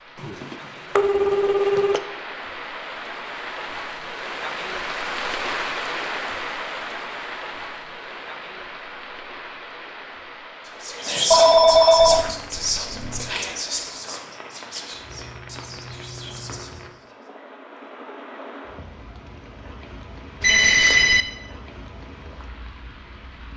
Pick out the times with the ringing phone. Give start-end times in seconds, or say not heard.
0.2-2.0, 11.3-13.3, 20.4-21.2.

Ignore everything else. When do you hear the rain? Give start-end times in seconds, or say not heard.
0.0-23.5.